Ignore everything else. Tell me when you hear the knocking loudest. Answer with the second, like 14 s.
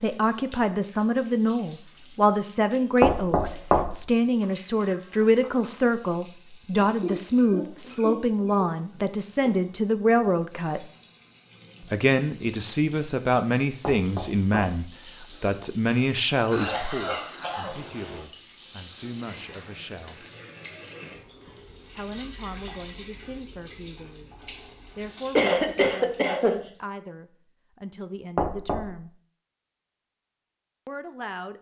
3 s.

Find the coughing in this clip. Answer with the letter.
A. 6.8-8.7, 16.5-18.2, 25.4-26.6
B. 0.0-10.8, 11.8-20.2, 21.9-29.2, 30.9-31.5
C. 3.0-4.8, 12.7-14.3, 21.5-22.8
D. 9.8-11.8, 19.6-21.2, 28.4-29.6
A.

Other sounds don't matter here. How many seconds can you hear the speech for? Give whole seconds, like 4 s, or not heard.
27 s.